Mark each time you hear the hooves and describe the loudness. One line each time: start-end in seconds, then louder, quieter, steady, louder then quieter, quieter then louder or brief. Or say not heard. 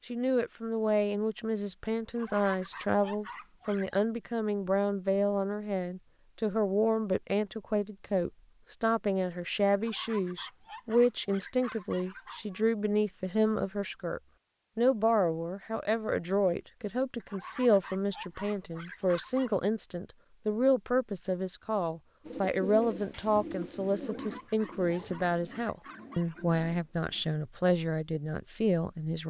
not heard.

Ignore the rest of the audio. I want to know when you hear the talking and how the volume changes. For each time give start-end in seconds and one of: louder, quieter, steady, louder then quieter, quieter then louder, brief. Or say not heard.
0.1-29.2 steady.